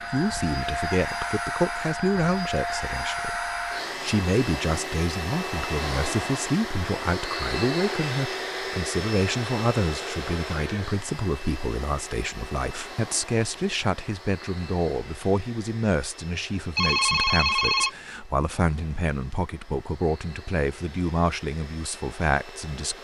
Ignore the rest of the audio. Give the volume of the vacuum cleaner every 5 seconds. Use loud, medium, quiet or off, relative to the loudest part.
loud, loud, medium, quiet, quiet.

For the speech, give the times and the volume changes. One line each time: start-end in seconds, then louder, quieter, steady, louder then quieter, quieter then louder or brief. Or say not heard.
0.1-22.9 steady.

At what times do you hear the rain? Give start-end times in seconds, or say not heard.
not heard.